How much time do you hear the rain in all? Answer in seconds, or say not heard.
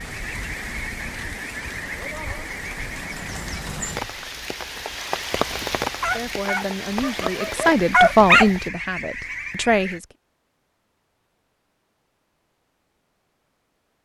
9 s.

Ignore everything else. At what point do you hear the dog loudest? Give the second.
8 s.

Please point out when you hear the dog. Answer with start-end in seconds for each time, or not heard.
6.0-8.4.